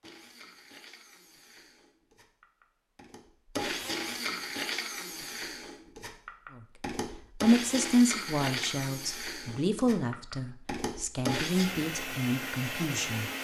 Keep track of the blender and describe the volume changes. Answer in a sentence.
The loudness of the blender goes up.